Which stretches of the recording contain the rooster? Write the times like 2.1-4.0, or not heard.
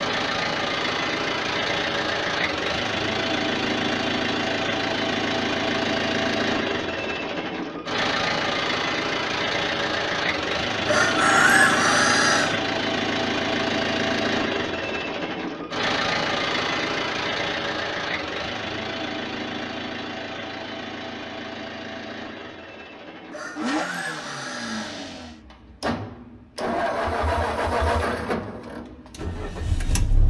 10.8-12.6, 23.3-25.0.